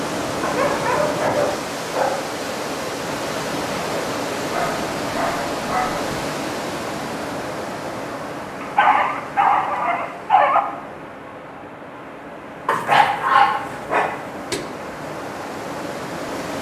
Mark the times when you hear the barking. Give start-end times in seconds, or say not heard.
0.4-2.4, 4.5-6.0, 8.6-10.6, 12.7-14.7.